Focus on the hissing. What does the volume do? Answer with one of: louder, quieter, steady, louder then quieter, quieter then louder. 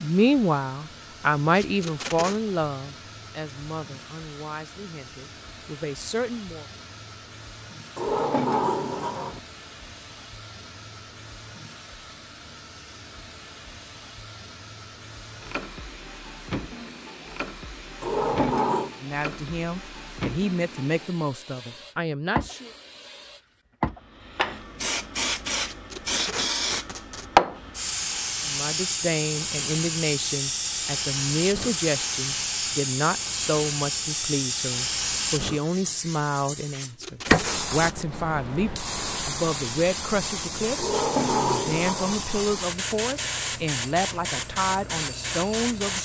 louder.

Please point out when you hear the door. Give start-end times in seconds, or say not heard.
8.0-9.4, 18.0-18.9, 40.8-42.2.